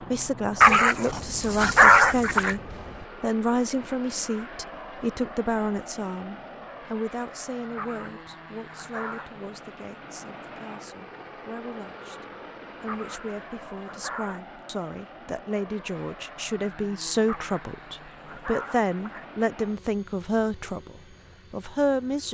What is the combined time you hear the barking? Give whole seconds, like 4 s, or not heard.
7 s.